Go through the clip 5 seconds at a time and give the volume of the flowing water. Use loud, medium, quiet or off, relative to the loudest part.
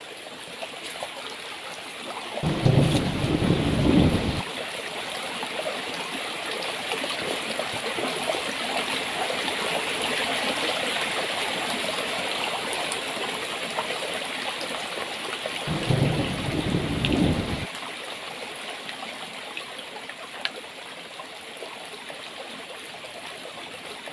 medium, loud, loud, medium, medium.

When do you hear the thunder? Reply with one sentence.
The thunder can be heard from 2.4 to 4.5 s and from 15.7 to 17.7 s.